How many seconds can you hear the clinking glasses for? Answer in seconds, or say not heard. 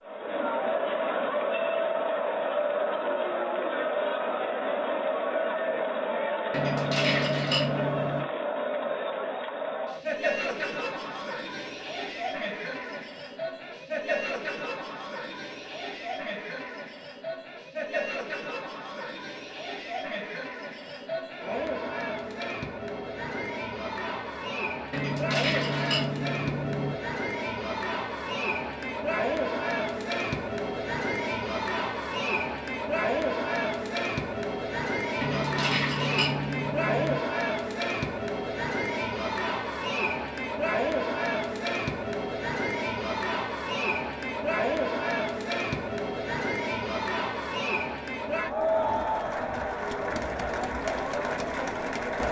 6 s.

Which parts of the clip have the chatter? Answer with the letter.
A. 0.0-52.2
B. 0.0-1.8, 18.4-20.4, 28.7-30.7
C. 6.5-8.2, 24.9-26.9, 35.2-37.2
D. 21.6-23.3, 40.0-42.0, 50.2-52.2
A.